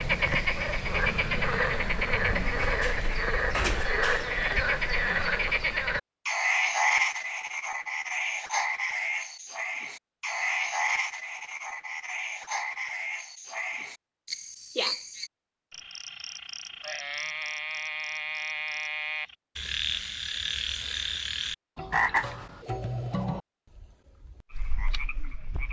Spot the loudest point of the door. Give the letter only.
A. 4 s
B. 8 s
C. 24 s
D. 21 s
A.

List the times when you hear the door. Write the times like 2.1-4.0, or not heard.
2.3-4.2.